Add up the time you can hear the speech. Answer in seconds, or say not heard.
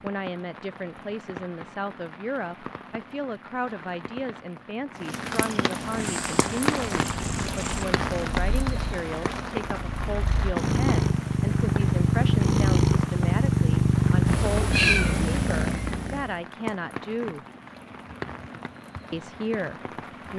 19 s.